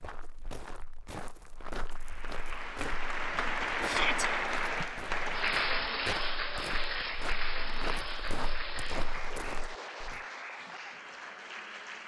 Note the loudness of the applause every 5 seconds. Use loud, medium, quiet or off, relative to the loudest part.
loud, loud, medium.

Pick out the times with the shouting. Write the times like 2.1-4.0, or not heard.
3.8-4.2.